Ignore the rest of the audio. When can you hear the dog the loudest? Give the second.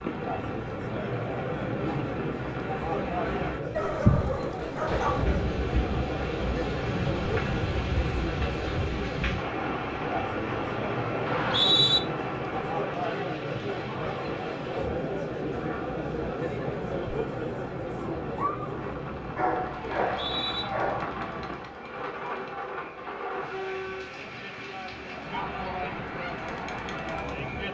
4 s.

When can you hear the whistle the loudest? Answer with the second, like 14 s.
12 s.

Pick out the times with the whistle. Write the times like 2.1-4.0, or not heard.
11.2-12.0, 20.1-20.6.